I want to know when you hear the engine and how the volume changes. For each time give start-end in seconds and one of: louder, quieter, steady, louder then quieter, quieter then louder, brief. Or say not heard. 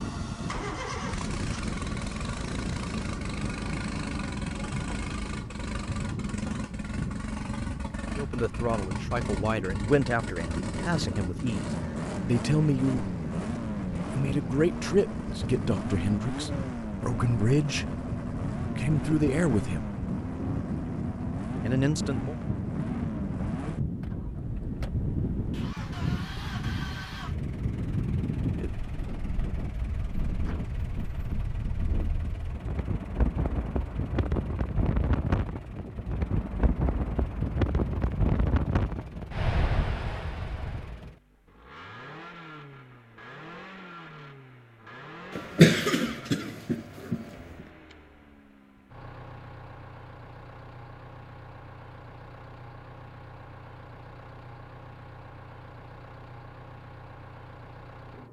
0.0-58.2 quieter.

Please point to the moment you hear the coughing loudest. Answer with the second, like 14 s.
46 s.